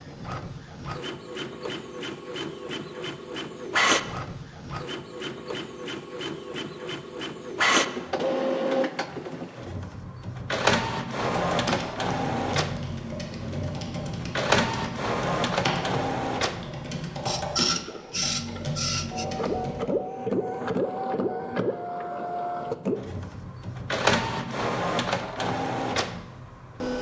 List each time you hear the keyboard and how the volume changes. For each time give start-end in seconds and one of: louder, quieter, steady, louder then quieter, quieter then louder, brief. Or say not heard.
11.2-19.8 steady.